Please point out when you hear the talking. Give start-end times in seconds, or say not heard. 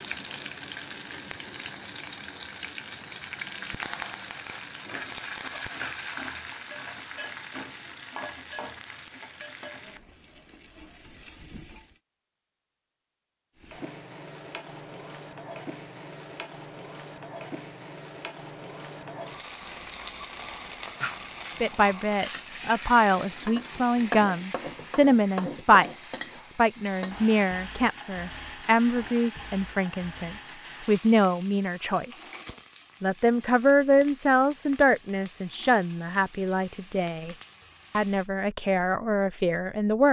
21.6-32.1, 33.0-40.0.